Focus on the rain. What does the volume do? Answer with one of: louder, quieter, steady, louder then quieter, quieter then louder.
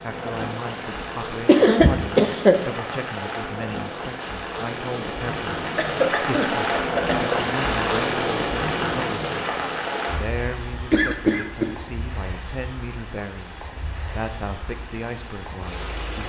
louder then quieter.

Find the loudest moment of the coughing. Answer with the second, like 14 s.
2 s.